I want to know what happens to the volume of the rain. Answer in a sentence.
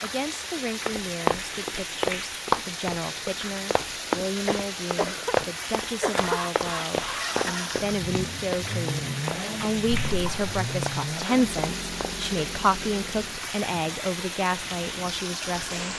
The loudness of the rain stays about the same.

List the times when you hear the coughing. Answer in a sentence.
The coughing can be heard from 4.5 to 5.3 s, from 6.0 to 6.4 s and from 9.9 to 10.6 s.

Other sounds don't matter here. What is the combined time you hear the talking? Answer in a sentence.
The talking can be heard for 16 seconds in total.